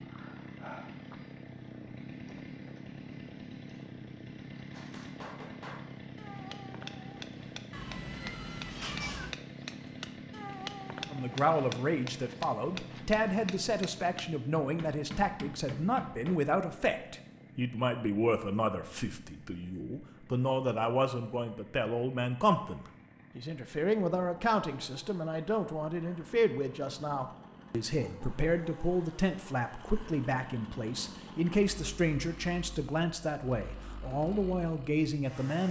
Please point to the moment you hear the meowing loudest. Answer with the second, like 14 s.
9 s.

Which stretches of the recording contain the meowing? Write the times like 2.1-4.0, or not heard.
7.7-9.3.